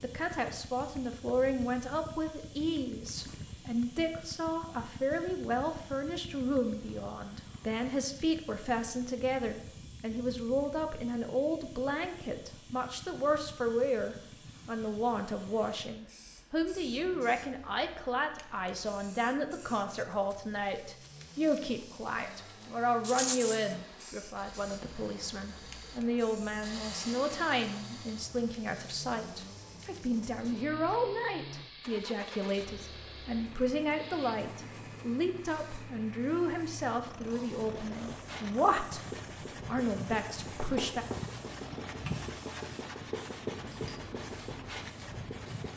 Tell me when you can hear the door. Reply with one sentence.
The door can't be heard in this clip.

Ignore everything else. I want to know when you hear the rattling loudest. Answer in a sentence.
The volume of the rattling peaks at 23 seconds.